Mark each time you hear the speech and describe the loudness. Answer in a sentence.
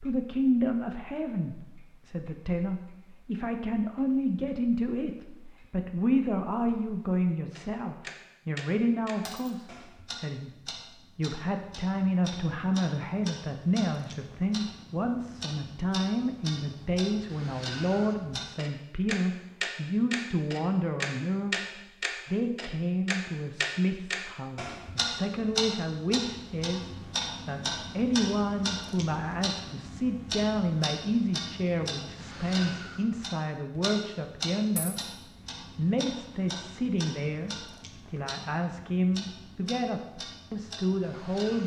You can hear the speech from 0.0 to 41.6 s, at a steady volume.